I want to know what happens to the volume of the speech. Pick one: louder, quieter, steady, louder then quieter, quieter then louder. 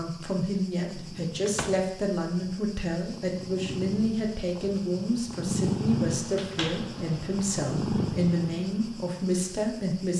steady.